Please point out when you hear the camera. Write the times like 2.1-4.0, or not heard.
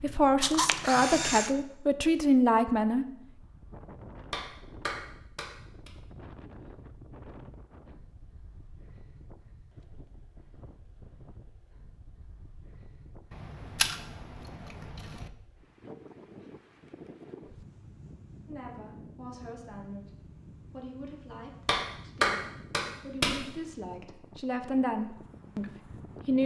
0.4-1.5, 13.3-15.3.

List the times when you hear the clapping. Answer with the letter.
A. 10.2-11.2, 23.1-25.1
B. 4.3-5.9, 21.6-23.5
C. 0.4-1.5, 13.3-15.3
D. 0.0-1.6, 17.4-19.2
B.